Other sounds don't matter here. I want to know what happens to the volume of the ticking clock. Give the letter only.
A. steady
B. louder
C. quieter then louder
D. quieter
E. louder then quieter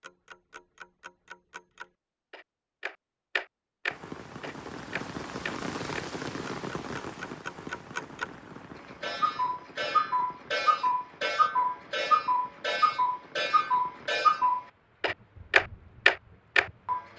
B.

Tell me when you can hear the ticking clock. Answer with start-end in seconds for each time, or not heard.
0.0-17.1.